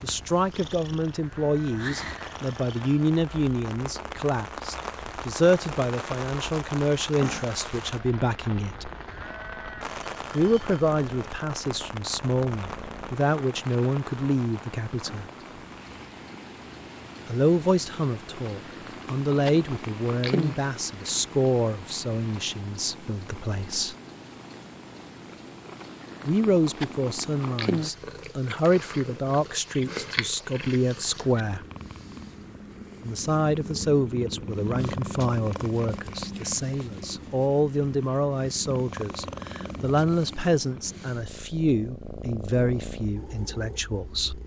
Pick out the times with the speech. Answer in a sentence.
You can hear the speech from 0.0 to 8.9 s, from 10.3 to 15.2 s, from 17.2 to 23.9 s, from 26.2 to 31.6 s and from 33.0 to 44.4 s.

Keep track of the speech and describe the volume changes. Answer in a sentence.
The volume of the speech stays about the same.